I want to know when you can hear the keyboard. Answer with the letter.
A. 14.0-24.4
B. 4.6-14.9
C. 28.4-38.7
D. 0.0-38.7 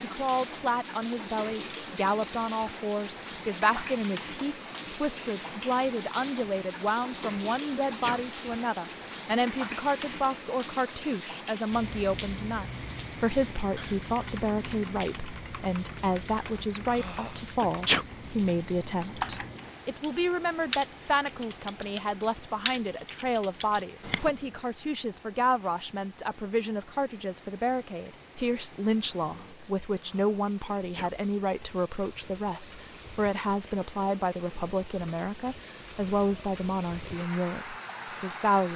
A.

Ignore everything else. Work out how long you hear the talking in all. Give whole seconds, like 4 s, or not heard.
39 s.